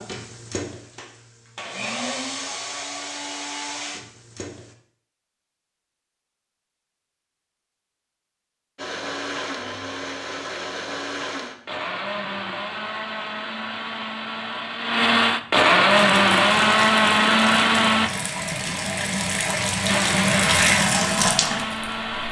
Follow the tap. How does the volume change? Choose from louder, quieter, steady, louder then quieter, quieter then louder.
louder.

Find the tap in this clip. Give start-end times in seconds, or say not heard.
15.9-22.2.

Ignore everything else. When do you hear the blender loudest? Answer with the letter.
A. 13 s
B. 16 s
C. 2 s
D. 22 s
B.